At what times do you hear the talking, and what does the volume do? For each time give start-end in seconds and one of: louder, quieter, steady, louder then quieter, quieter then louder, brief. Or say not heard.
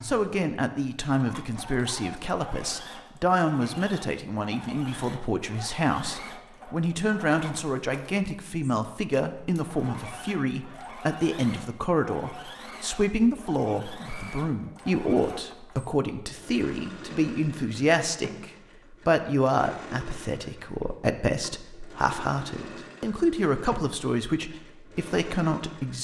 0.0-25.9 steady.